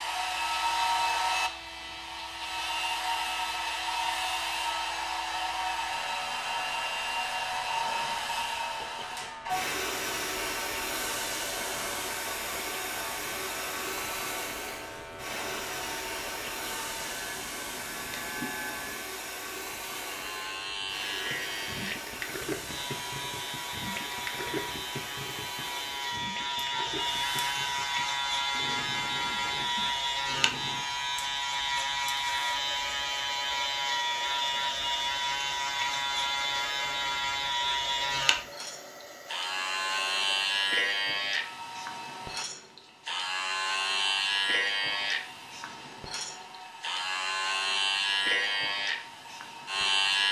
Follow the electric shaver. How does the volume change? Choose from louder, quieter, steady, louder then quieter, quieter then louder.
louder.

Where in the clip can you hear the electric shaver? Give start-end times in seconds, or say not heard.
0.0-50.2.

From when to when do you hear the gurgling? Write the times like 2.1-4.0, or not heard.
21.3-30.9.